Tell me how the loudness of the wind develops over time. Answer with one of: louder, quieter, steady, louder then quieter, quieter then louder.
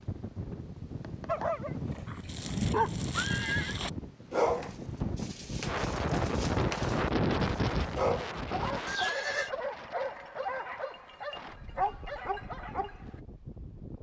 louder then quieter.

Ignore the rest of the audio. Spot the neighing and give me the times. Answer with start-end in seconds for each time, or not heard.
1.9-3.8, 8.8-9.5.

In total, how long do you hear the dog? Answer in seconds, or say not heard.
12 s.